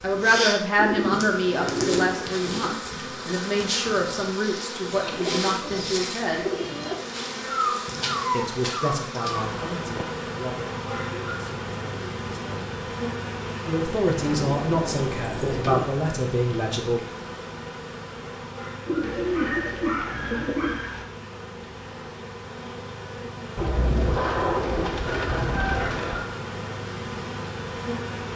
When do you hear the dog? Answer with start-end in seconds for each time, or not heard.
7.5-9.4, 19.0-21.1.